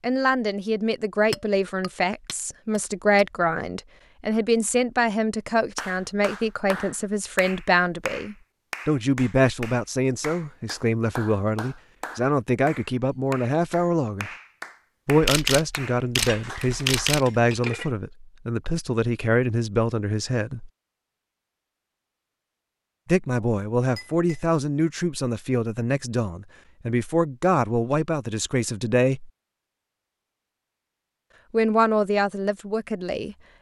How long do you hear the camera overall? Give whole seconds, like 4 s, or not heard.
2 s.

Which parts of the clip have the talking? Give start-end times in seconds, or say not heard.
0.0-14.3, 15.1-20.7, 23.1-29.3, 31.5-33.4.